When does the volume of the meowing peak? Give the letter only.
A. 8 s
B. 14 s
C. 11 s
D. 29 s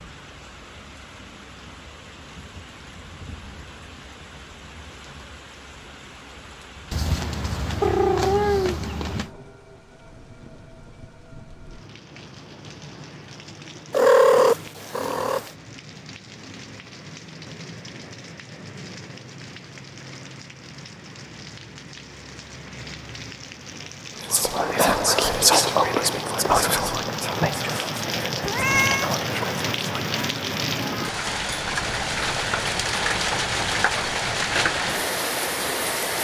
B.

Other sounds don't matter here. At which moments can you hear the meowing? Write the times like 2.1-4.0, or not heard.
6.9-9.3, 13.9-15.5, 28.4-29.1.